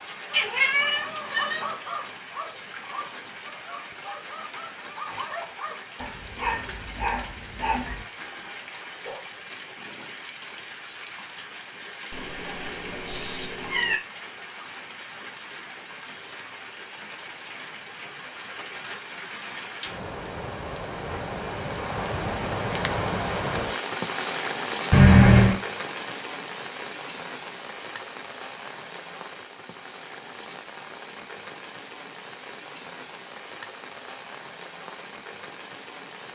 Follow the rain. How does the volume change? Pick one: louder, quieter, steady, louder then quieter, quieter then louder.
louder then quieter.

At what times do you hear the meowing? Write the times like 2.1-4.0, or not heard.
0.3-1.8, 12.1-13.9, 24.9-25.6.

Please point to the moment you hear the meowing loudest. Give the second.
25 s.